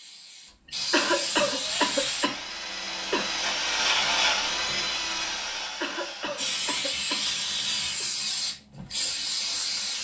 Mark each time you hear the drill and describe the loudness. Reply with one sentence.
You can hear the drill from 1.6 to 6.6 s, getting louder then quieter.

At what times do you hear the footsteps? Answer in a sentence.
The footsteps can't be heard in this clip.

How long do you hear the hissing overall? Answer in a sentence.
The hissing can be heard for 6 seconds in total.